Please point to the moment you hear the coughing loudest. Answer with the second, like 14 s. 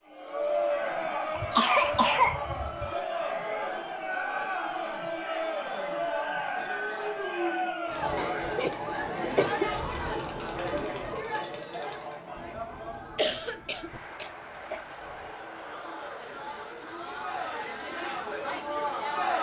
2 s.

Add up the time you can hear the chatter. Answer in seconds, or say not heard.
19 s.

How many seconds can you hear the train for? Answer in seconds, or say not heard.
7 s.